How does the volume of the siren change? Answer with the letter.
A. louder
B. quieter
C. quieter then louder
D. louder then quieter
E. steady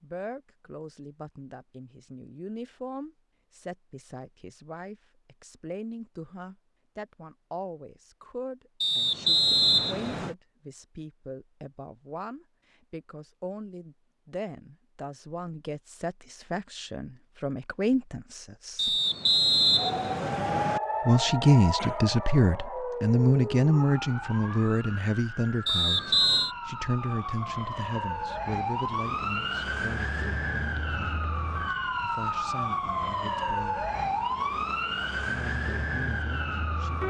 C.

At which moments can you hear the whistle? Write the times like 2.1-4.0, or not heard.
8.8-10.3, 18.8-20.8, 25.6-26.5.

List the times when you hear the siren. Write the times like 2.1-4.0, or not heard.
19.8-37.0.